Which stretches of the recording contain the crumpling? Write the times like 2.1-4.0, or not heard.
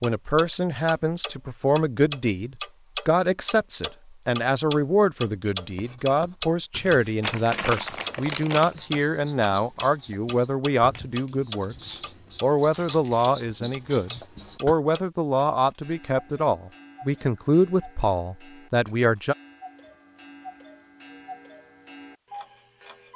7.2-9.1, 12.7-13.3.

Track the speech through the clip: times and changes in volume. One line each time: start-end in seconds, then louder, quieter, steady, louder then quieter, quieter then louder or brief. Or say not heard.
0.0-19.4 steady.